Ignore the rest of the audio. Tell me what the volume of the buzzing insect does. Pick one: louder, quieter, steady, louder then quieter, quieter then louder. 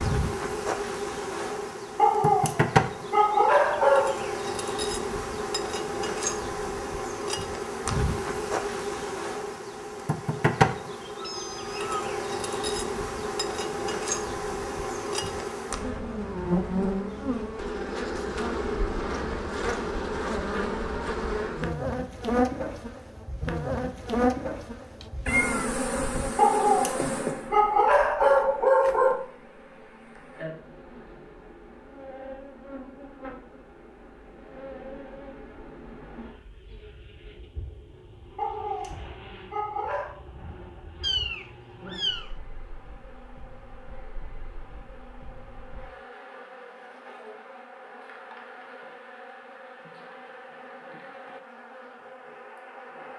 quieter.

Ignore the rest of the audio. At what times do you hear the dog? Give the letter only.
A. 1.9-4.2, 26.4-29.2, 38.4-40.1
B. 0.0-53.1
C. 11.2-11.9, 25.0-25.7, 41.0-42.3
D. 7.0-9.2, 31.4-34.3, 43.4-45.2
A.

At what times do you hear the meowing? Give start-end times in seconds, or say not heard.
11.2-11.9, 25.0-25.7, 41.0-42.3.